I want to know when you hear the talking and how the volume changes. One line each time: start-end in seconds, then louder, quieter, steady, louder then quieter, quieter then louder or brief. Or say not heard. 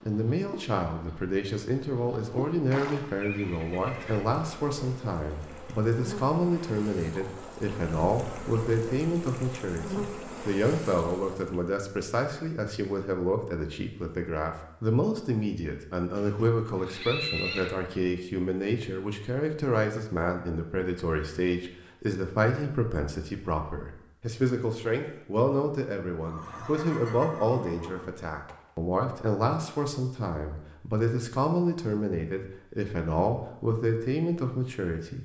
0.1-35.2 steady.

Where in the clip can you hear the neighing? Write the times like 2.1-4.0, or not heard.
2.7-4.2, 16.1-17.8, 26.2-28.6.